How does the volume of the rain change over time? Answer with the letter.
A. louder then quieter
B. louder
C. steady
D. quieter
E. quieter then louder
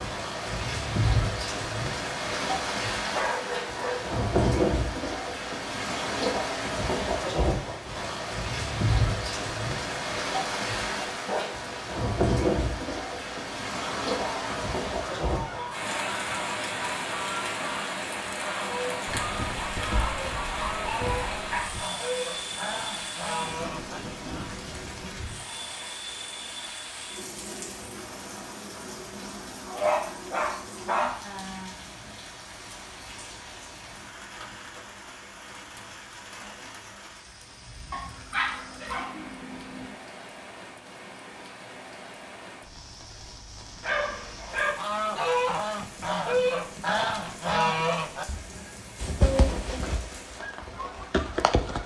D.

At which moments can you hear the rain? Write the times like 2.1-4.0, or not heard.
0.0-51.8.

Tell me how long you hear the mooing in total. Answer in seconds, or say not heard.
not heard.